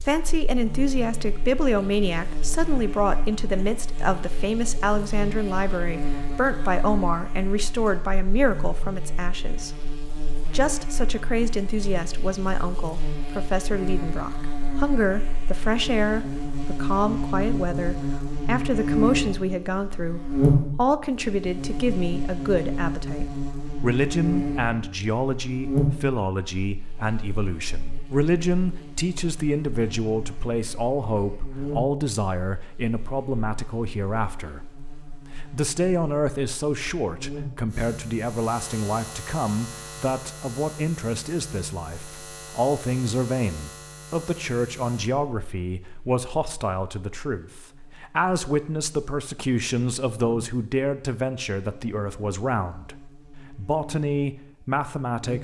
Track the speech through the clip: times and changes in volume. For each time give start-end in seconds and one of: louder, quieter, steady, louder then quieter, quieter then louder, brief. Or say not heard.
0.0-9.8 steady
10.4-55.4 steady.